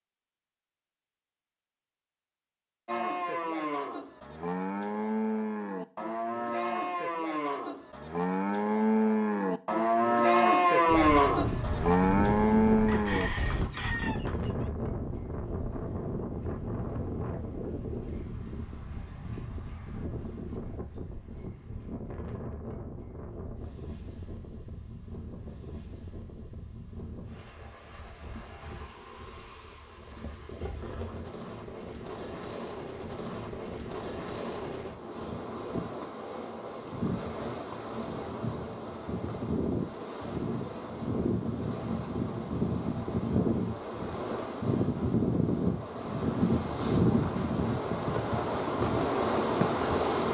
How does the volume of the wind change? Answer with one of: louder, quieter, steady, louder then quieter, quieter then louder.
quieter then louder.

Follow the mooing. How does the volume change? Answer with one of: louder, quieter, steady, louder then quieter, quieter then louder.
louder.